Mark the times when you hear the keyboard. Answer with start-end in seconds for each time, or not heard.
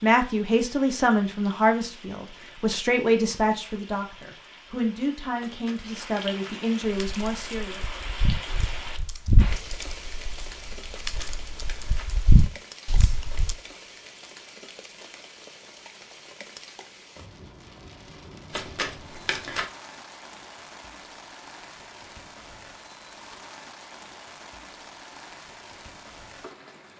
7.0-13.6.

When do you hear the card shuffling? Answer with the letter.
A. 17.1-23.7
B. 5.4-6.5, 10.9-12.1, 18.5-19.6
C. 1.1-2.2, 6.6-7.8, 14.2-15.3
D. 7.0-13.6
B.